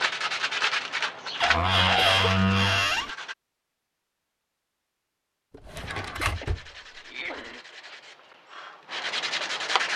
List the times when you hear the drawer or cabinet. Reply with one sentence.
You can hear the drawer or cabinet from 1.4 to 3.1 s and from 5.5 to 7.0 s.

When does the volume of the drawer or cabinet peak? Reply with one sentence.
The volume of the drawer or cabinet peaks at 2 seconds.